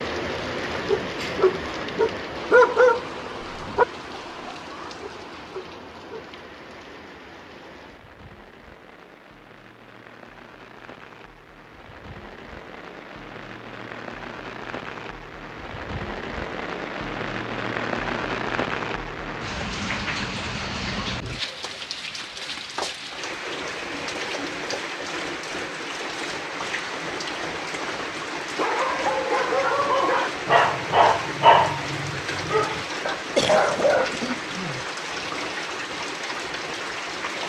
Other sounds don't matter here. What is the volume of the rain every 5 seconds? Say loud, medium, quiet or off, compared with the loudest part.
loud, quiet, medium, loud, loud, loud, loud, loud.